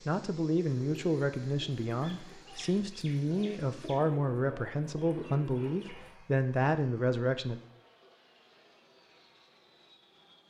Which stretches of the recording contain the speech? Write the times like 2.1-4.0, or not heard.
0.1-7.6.